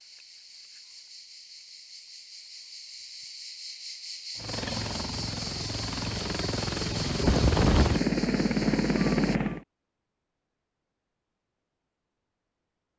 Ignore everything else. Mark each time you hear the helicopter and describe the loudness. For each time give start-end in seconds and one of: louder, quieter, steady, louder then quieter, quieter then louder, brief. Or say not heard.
4.3-9.6 louder.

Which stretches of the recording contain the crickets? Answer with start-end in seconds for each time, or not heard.
0.0-9.4.